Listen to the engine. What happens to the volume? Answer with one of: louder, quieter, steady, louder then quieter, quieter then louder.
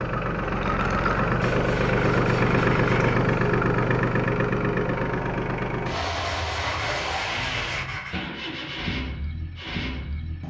quieter.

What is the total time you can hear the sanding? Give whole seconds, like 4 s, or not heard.
4 s.